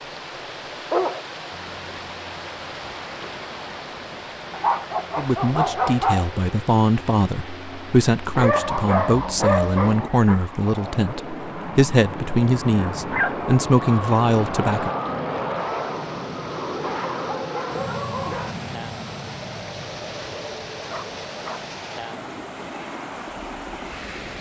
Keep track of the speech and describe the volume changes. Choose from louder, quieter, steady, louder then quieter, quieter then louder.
steady.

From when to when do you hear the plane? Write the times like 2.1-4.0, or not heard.
1.5-24.3.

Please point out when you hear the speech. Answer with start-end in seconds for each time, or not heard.
5.2-14.9.